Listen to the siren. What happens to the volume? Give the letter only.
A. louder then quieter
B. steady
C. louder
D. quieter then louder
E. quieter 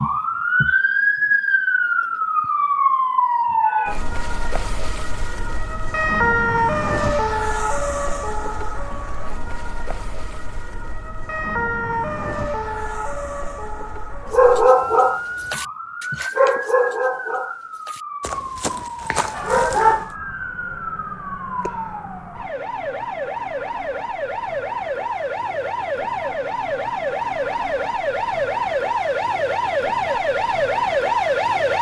D.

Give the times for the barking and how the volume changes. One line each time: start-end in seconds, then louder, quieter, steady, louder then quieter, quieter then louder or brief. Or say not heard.
14.3-20.1 quieter then louder.